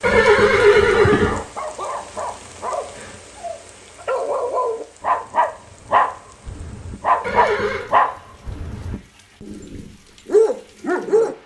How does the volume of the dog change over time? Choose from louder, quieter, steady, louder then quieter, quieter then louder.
louder.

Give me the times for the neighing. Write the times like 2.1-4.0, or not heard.
0.0-1.4, 7.2-7.9.